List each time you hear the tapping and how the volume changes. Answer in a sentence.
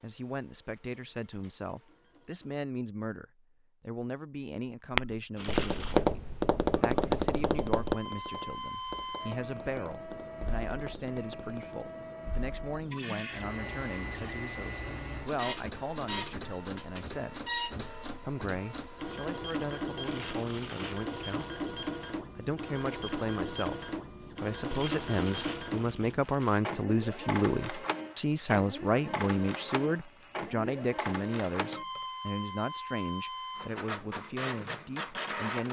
The tapping can be heard from 4.9 to 11.8 s, getting quieter.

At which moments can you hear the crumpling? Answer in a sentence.
The crumpling can be heard from 5.3 to 6.0 s, from 20.0 to 21.6 s and from 24.6 to 26.6 s.